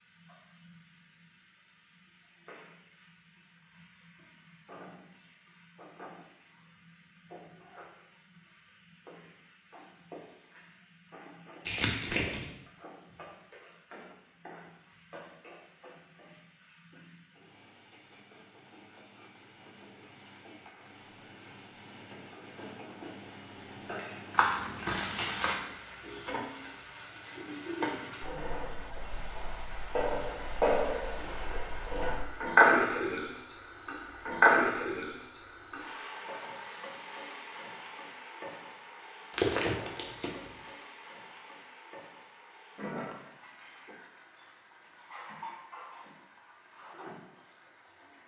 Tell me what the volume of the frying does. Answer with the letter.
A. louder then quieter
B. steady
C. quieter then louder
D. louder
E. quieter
A.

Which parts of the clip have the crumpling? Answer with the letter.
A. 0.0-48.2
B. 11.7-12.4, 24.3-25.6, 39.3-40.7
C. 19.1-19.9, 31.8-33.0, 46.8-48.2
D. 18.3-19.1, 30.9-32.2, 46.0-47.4
B.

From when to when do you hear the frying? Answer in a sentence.
You can hear the frying from 0.0 to 48.2 s.